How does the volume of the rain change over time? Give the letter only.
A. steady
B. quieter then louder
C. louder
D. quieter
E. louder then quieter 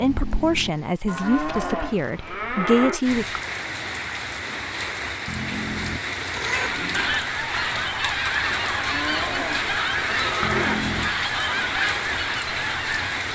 A.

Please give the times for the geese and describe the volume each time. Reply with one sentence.
The geese can be heard from 6.8 to 13.3 s, at a steady volume.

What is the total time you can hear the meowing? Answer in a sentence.
The meowing can be heard for 3 seconds in total.